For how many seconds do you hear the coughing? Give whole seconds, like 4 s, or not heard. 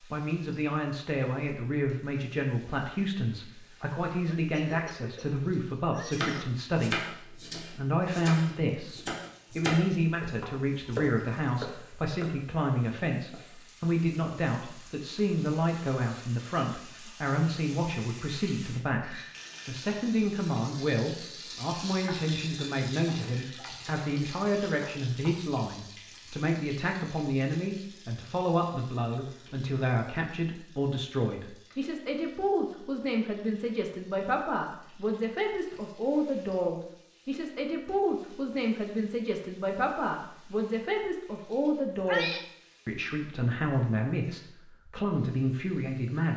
3 s.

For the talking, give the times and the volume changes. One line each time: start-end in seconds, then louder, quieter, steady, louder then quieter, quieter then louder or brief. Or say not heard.
0.0-46.3 steady.